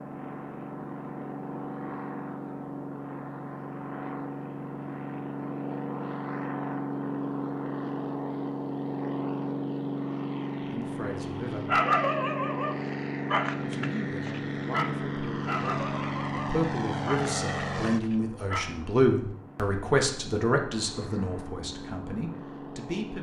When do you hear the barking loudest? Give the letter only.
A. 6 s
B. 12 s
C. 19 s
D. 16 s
B.